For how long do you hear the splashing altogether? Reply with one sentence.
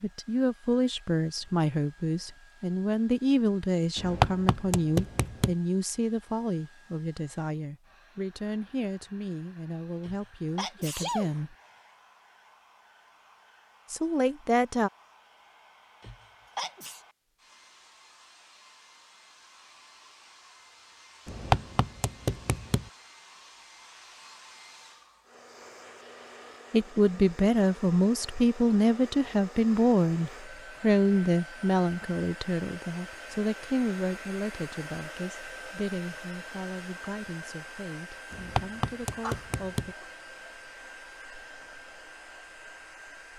You can't hear the splashing here.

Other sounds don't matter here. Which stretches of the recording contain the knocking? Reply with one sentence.
The knocking can be heard from 4.0 to 5.5 s, from 21.2 to 22.9 s and from 38.3 to 39.9 s.